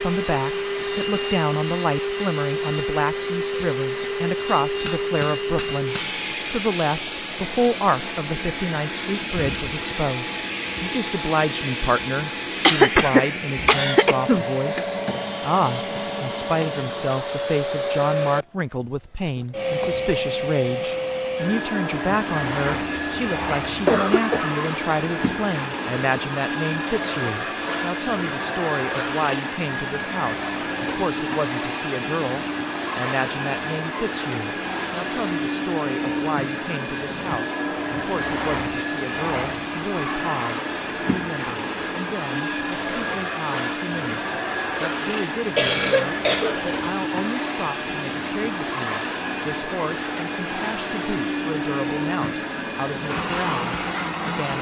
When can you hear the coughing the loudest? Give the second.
13 s.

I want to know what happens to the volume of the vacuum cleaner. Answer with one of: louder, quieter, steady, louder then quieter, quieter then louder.
steady.